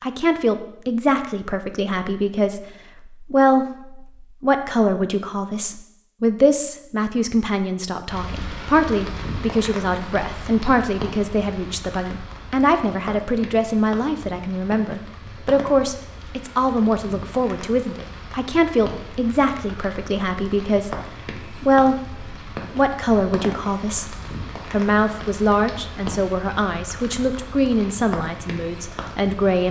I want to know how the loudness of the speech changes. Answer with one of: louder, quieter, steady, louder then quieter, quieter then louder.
steady.